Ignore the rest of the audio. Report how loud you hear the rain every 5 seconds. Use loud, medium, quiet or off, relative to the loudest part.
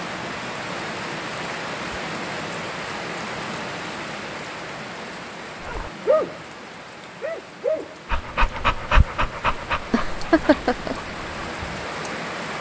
loud, medium, loud.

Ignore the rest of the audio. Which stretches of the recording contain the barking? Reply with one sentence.
The barking can be heard from 5.6 to 6.4 s and from 7.2 to 11.8 s.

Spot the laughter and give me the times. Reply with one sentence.
The laughter can be heard from 9.9 to 10.9 s.